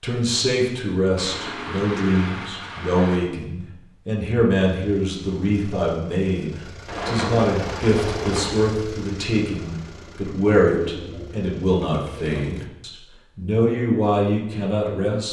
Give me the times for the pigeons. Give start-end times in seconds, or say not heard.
1.1-3.2, 6.8-8.7, 10.6-12.6.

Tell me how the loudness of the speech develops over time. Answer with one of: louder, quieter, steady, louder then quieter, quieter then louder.
steady.